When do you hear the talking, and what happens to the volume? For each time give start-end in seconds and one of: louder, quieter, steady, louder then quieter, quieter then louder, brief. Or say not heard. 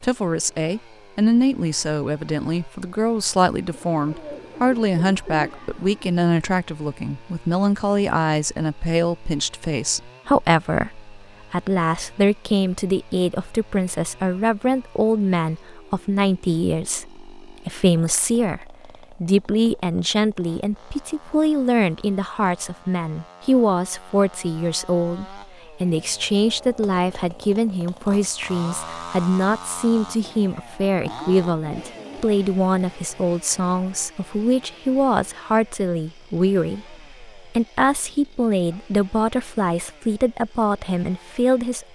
0.0-41.9 steady.